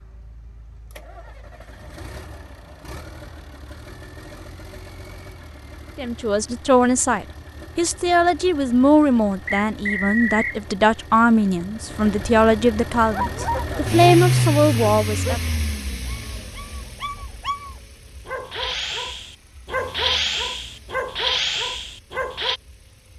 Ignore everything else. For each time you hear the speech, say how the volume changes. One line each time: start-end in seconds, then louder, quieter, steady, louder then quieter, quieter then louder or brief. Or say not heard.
6.0-15.4 steady.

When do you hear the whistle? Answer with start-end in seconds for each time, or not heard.
9.4-10.6.